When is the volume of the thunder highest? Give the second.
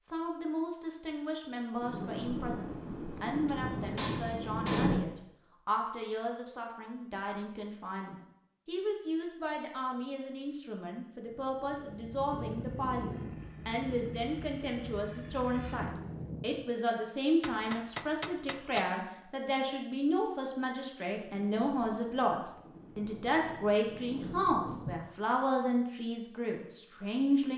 5 s.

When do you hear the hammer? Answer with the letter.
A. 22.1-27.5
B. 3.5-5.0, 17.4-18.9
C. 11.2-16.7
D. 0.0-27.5
B.